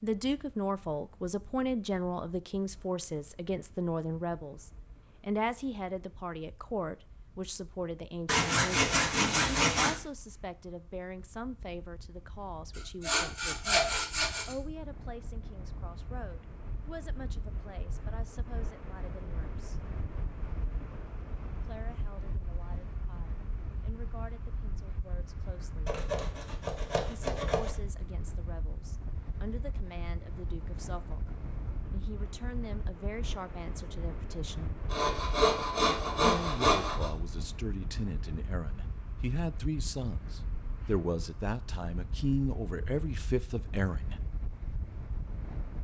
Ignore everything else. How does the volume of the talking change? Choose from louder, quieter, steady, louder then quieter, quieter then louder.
quieter then louder.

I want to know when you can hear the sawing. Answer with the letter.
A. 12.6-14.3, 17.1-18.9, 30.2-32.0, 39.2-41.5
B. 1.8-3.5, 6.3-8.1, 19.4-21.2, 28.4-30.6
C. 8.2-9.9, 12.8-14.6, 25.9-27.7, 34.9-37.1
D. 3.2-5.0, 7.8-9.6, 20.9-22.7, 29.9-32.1
C.